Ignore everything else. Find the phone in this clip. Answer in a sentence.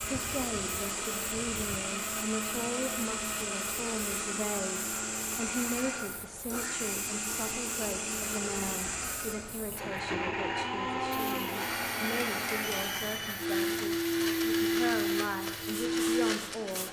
The phone can be heard from 12.6 to 13.3 s.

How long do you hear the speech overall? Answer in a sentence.
The speech can be heard for 17 seconds in total.